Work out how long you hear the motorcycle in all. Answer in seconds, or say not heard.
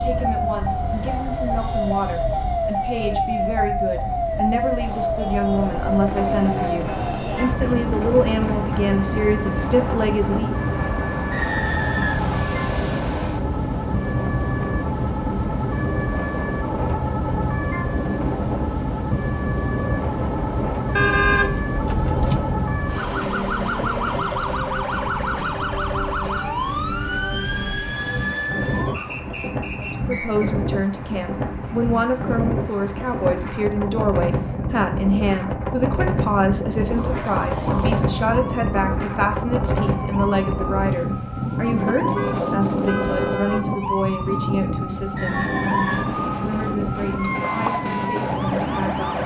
not heard.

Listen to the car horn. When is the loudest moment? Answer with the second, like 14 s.
21 s.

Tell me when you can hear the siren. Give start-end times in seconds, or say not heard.
0.0-29.2, 36.9-49.2.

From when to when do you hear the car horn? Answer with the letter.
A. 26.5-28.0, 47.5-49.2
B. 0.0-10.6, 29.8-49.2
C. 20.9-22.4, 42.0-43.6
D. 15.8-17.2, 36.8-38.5
C.